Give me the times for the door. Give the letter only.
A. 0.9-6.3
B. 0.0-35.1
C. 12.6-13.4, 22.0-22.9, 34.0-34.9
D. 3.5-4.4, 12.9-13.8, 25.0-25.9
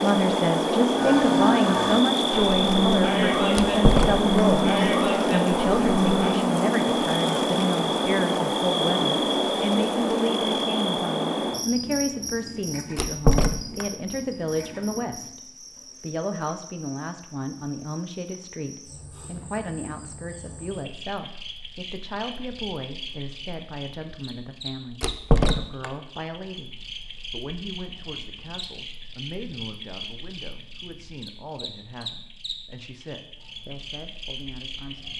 D.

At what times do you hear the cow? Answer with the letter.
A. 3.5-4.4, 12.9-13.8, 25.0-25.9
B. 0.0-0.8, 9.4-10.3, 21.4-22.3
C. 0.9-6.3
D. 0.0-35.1
C.